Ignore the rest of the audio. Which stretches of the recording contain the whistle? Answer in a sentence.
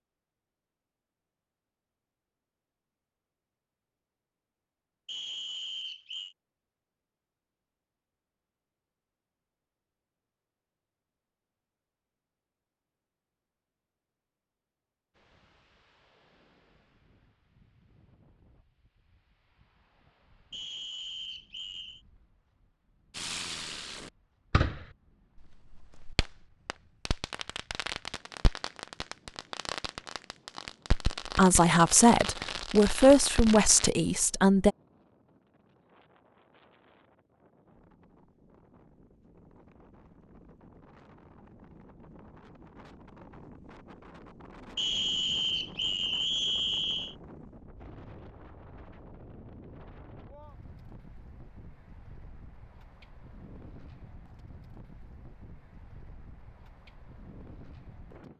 The whistle can be heard from 5.0 to 6.3 s, from 20.5 to 22.0 s and from 44.8 to 47.1 s.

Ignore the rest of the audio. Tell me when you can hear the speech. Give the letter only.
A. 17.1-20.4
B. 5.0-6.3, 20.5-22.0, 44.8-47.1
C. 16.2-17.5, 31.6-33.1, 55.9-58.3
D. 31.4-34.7
D.